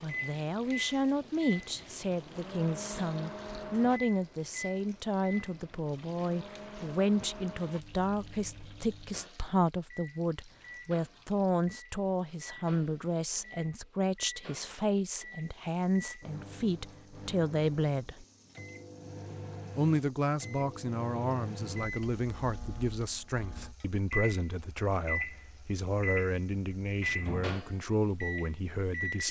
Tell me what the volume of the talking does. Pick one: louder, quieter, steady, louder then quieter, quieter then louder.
steady.